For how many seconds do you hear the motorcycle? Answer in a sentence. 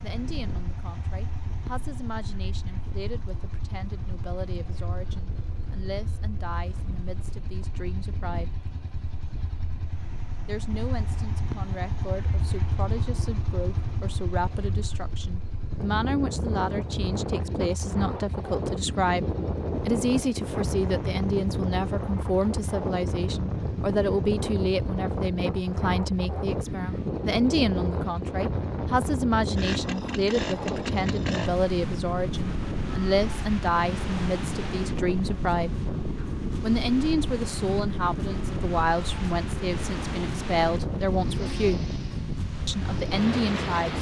The motorcycle can be heard for 44 seconds in total.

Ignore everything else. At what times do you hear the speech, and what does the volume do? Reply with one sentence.
The speech can be heard from 0.0 to 8.5 s, at a steady volume; from 10.4 to 19.2 s, getting louder; from 19.9 to 35.7 s, at a steady volume; from 36.6 to 42.0 s, at a steady volume; and briefly from 42.6 to 43.9 s.